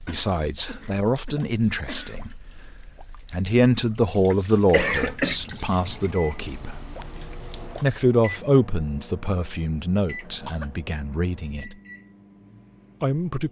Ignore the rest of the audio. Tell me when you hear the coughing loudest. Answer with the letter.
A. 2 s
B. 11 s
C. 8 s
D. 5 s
D.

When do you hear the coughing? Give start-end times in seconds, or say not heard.
0.1-2.4, 4.5-5.4, 10.2-10.7.